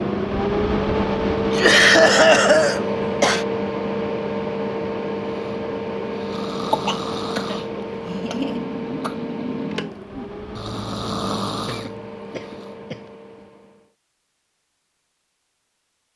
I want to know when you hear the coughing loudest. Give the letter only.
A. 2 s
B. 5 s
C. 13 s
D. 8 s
A.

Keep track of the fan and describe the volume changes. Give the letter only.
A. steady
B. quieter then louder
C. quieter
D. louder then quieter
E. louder
C.